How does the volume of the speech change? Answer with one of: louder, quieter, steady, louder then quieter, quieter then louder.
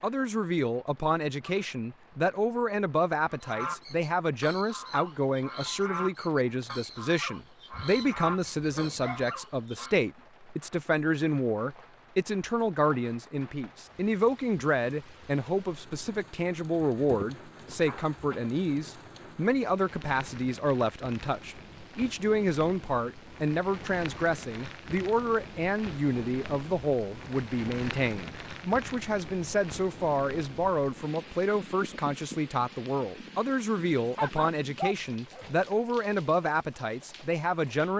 steady.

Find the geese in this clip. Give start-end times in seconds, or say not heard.
3.4-9.9.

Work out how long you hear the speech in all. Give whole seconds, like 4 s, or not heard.
38 s.